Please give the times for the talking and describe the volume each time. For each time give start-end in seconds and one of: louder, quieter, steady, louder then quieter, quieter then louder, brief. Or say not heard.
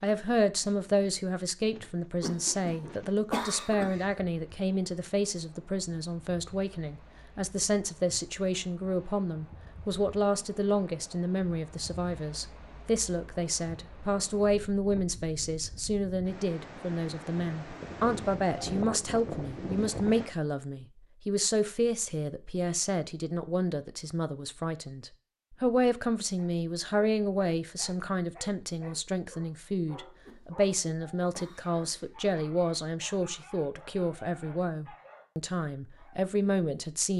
0.0-37.1 steady.